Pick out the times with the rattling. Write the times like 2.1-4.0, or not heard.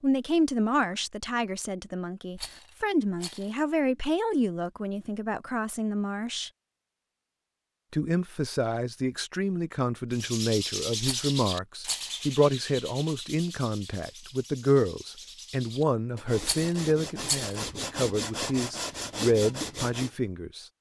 2.4-3.5, 11.0-12.2, 16.4-17.6.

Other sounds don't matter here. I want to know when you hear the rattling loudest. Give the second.
17 s.